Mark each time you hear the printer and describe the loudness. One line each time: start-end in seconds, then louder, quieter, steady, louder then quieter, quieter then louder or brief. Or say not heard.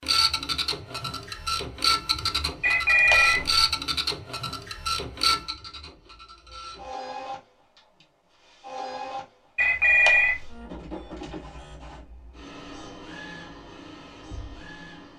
0.0-15.1 quieter.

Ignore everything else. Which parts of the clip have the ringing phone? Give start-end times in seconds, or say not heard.
2.6-3.5, 9.6-10.6.